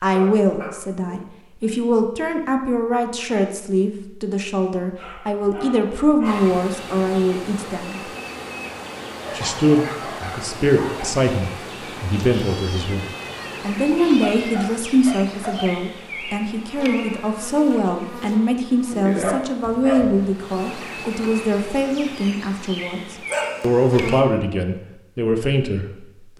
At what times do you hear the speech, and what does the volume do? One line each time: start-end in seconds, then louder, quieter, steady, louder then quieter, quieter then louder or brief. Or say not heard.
0.0-8.0 steady
9.3-26.3 steady.